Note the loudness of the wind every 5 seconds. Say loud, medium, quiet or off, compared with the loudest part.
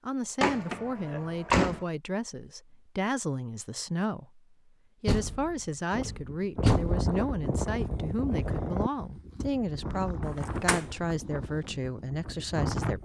off, loud, loud.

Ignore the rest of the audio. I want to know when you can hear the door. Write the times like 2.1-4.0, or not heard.
0.4-1.9, 5.0-7.0, 10.3-10.8.